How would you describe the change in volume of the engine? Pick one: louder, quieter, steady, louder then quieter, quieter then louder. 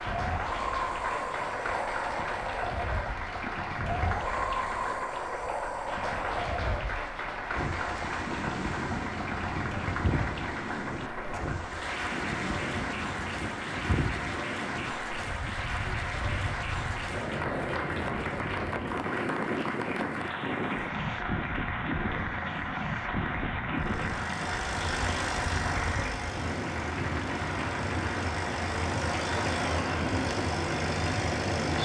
quieter then louder.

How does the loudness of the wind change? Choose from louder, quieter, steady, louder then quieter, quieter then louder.
steady.